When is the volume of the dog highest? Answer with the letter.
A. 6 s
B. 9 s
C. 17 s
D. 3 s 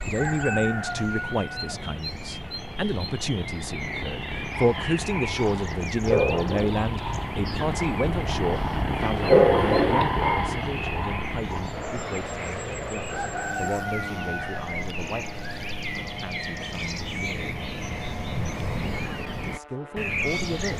B.